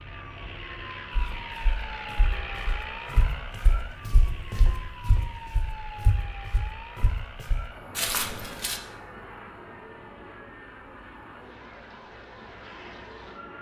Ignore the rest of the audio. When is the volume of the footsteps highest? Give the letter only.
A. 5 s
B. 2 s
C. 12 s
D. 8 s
D.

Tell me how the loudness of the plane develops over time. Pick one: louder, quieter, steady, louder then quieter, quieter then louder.
quieter.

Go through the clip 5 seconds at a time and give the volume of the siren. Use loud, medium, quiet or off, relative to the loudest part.
loud, loud, medium.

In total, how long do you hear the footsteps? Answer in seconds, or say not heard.
8 s.